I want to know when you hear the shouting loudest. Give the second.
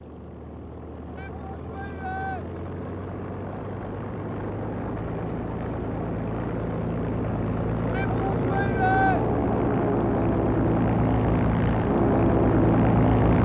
9 s.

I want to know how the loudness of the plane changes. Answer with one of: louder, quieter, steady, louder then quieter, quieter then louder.
louder.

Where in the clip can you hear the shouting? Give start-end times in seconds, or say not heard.
1.1-2.5, 7.9-9.2.